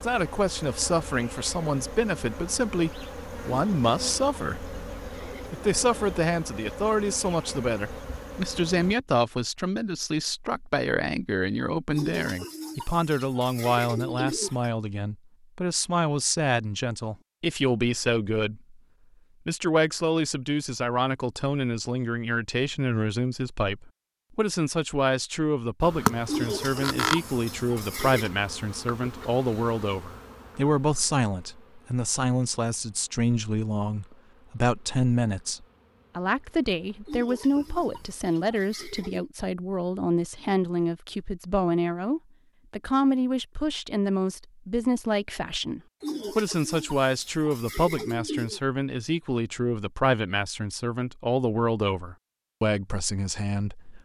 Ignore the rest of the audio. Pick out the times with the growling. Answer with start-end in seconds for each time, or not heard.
not heard.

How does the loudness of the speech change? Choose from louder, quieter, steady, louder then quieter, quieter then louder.
steady.